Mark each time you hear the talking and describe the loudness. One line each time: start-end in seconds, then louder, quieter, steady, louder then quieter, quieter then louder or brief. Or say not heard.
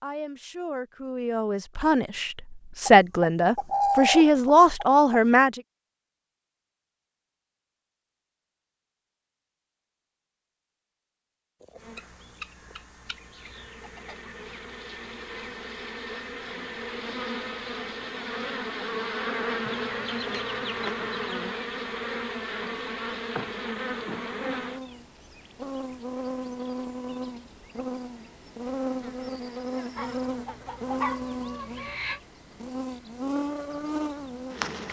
0.0-5.6 louder.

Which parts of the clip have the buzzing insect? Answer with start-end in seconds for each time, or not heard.
11.8-34.8.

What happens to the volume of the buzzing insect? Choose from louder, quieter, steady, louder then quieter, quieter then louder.
louder.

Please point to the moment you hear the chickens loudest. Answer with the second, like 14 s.
4 s.